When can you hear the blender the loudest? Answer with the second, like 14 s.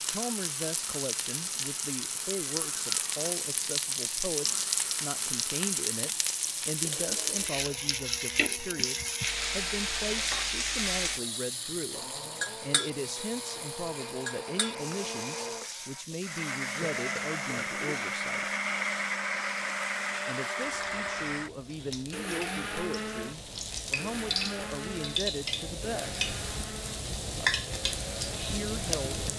19 s.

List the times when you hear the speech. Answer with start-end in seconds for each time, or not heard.
0.1-18.5, 20.2-26.2, 28.4-29.3.